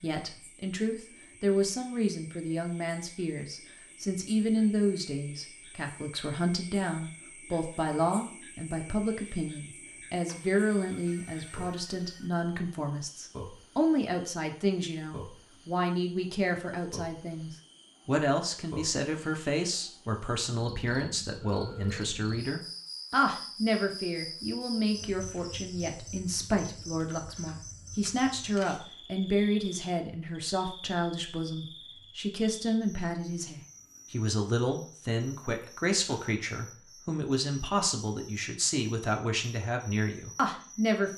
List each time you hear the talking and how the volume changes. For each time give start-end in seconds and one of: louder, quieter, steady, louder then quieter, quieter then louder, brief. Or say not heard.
0.0-41.1 steady.